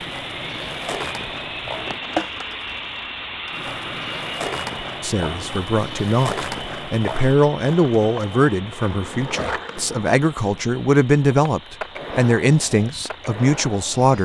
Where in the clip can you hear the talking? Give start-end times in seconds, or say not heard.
5.0-14.2.